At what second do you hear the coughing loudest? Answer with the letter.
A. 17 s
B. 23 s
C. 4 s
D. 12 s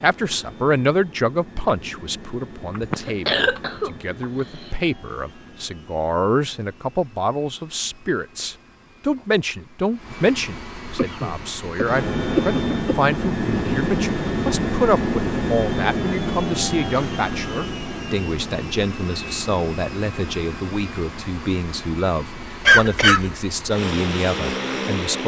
B.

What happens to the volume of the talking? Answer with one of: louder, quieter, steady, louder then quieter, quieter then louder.
steady.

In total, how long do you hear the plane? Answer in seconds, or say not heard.
25 s.